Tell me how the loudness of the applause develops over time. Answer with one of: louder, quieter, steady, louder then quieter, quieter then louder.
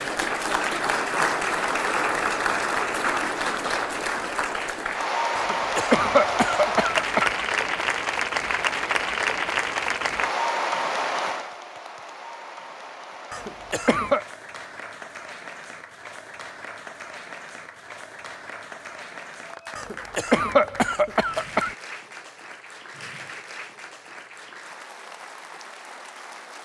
quieter.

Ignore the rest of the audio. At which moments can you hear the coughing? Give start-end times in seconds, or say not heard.
5.3-7.3, 13.3-14.2, 19.8-21.8.